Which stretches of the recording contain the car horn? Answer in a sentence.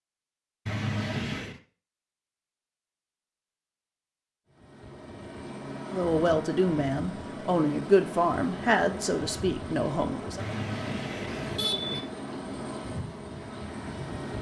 You can hear the car horn from 0.7 to 1.6 s and from 10.3 to 12.0 s.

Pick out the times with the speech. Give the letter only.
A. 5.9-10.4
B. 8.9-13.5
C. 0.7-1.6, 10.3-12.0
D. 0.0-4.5
A.